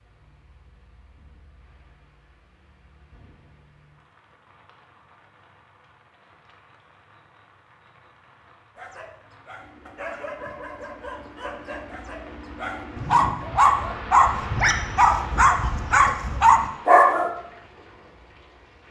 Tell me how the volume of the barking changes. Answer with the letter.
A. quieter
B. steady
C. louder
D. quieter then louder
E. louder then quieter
C.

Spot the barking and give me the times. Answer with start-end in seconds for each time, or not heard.
8.8-17.3.